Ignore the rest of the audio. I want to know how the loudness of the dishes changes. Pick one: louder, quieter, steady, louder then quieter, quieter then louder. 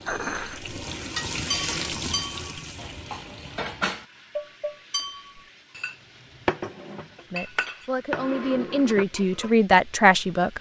steady.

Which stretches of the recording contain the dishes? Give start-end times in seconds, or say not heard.
0.1-9.5.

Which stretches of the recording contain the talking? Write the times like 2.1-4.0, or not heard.
7.3-10.5.